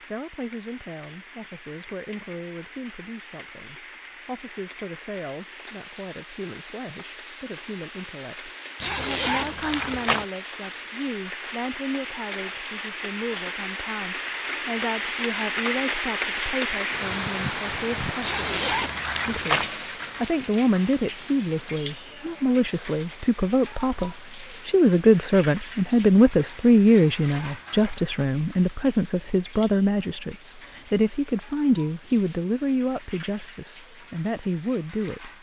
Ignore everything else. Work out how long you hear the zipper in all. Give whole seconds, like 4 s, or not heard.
4 s.